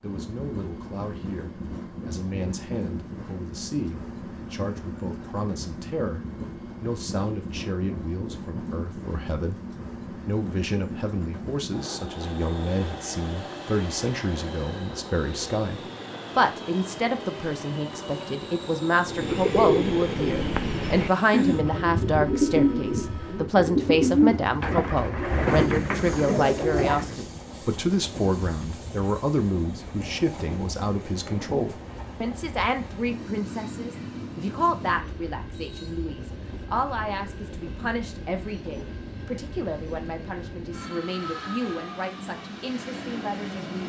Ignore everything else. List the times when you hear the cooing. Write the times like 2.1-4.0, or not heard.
19.1-27.2.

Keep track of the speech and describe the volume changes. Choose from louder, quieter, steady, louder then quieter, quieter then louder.
louder then quieter.